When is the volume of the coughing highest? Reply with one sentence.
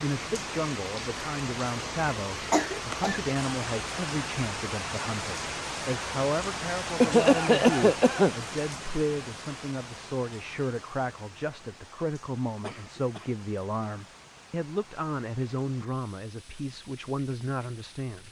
The loudest moment of the coughing is at 7 seconds.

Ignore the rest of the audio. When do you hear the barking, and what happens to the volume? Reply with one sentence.
You can't hear the barking here.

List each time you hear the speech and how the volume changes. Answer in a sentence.
The speech can be heard from 0.0 to 18.2 s, at a steady volume.